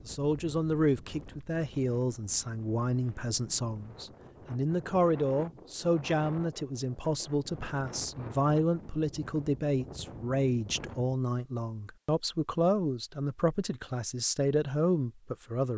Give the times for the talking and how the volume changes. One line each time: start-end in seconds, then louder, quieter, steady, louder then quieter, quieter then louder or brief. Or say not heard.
0.1-15.7 steady.